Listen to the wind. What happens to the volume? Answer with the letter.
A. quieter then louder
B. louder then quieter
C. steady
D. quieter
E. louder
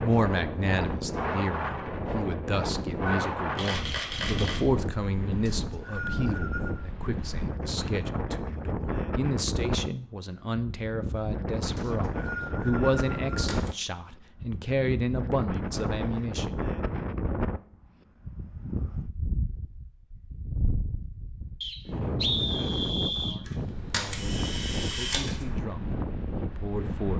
C.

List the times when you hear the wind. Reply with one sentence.
You can hear the wind from 0.0 to 27.1 s.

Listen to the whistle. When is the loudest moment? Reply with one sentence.
The volume of the whistle peaks at 22 seconds.